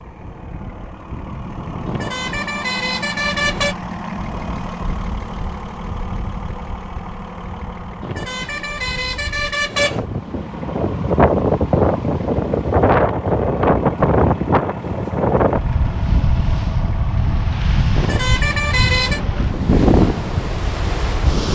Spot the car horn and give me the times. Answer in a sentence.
You can hear the car horn from 1.9 to 3.8 s, from 8.0 to 10.1 s and from 17.9 to 19.2 s.